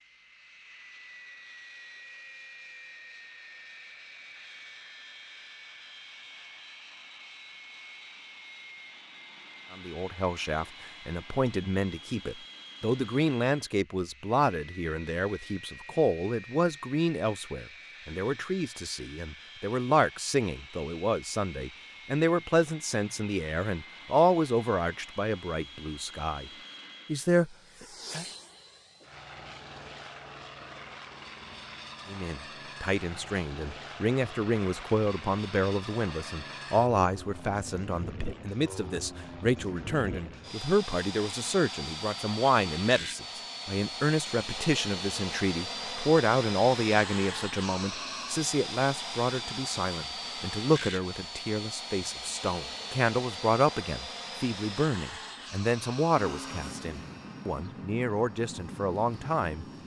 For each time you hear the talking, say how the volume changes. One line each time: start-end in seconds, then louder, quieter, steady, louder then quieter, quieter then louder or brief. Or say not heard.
9.7-28.2 steady
32.0-59.6 steady.